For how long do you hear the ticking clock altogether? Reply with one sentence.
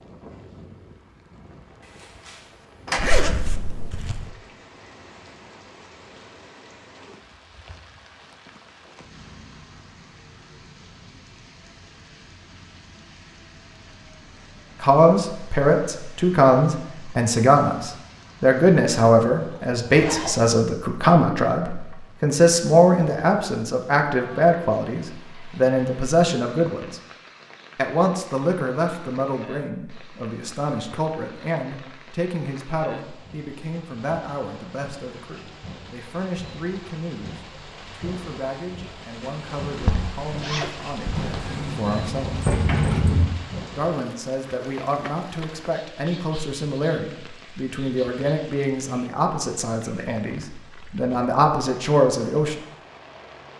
You can't hear the ticking clock here.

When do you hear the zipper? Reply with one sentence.
You can hear the zipper from 3.0 to 4.3 s, from 19.2 to 20.6 s and from 39.8 to 41.5 s.